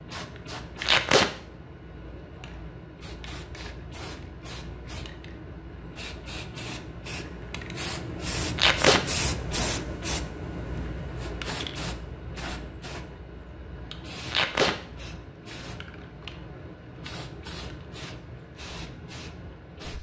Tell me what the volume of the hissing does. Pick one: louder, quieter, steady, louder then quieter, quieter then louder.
louder then quieter.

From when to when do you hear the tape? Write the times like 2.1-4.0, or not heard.
0.8-1.3, 8.6-9.0, 14.3-14.8.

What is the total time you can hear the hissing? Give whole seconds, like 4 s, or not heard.
20 s.